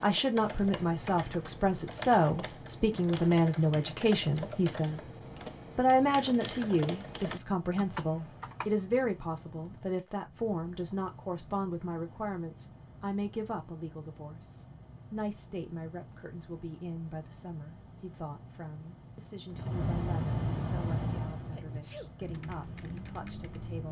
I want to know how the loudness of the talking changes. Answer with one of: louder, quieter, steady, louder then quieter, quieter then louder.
quieter.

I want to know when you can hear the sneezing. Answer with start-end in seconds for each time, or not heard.
21.5-22.1.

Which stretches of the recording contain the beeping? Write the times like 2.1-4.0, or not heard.
not heard.